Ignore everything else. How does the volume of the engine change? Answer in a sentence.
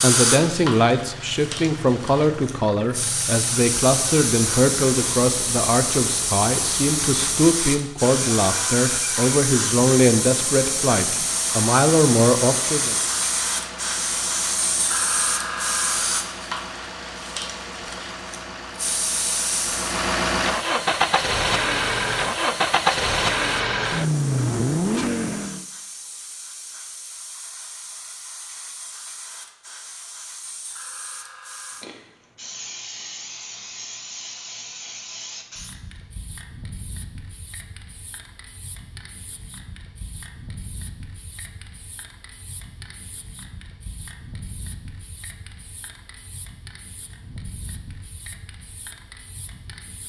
The volume of the engine goes up.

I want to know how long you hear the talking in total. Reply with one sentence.
The talking can be heard for 13 seconds in total.